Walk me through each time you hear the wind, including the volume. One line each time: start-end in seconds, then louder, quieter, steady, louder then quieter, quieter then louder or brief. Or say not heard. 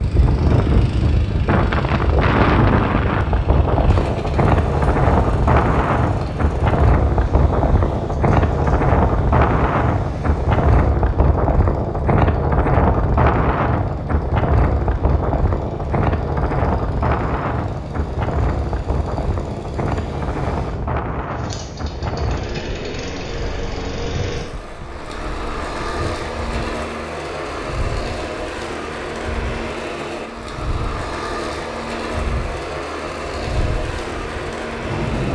0.0-35.2 quieter.